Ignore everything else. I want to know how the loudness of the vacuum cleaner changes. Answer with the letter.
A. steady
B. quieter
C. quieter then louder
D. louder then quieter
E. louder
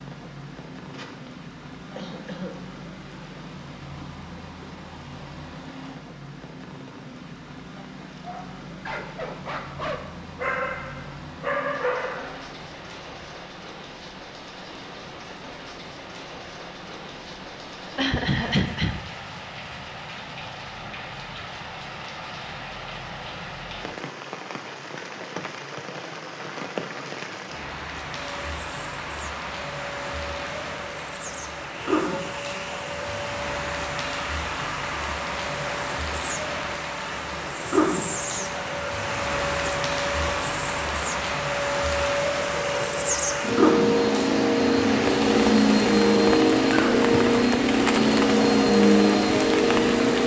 E.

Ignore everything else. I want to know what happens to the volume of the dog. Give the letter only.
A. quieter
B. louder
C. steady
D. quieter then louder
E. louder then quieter
E.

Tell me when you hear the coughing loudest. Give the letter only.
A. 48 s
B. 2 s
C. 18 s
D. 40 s
C.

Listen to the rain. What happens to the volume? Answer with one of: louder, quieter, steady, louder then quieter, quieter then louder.
louder.